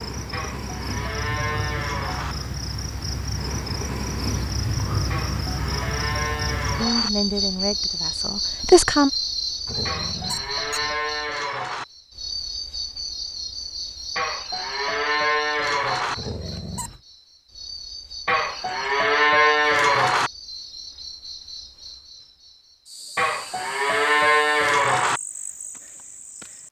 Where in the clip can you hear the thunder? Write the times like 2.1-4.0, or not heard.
not heard.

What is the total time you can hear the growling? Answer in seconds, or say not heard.
2 s.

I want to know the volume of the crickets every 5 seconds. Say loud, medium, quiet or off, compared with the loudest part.
loud, loud, medium, medium, quiet, quiet.